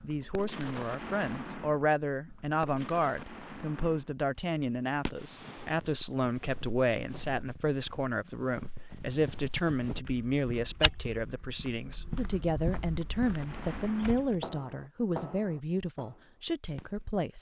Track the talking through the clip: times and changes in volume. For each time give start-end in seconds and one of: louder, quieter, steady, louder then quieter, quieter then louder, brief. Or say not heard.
0.0-17.3 steady.